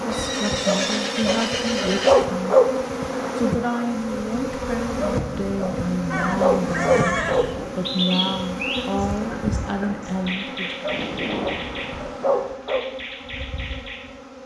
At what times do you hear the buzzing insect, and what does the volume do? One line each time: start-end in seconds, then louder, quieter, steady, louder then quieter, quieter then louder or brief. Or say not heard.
0.0-14.4 quieter.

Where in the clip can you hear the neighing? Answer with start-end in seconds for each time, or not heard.
0.1-2.2, 6.1-7.5, 11.5-12.1.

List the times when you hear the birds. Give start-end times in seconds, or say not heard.
7.2-14.4.